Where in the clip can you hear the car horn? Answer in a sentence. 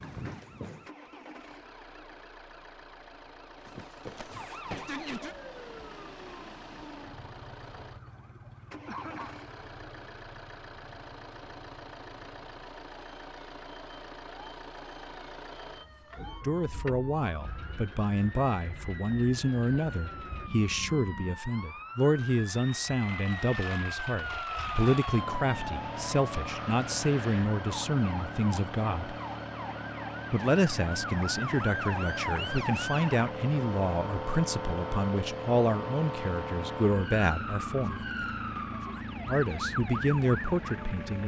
The car horn can't be heard in this clip.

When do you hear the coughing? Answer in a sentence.
The coughing can be heard from 8.8 to 9.3 s.